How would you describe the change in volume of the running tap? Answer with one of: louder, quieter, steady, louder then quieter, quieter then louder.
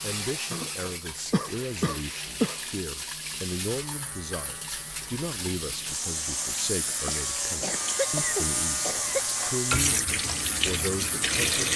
louder.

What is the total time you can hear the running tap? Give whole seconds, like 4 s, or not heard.
12 s.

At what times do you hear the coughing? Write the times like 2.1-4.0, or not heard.
0.5-2.5, 7.0-9.3.